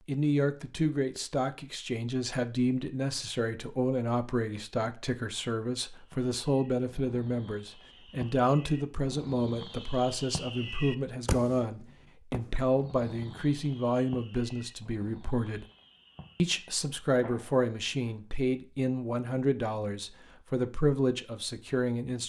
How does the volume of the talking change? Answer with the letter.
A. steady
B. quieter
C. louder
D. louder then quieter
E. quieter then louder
A.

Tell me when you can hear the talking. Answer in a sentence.
You can hear the talking from 0.1 to 15.7 s and from 16.4 to 22.2 s.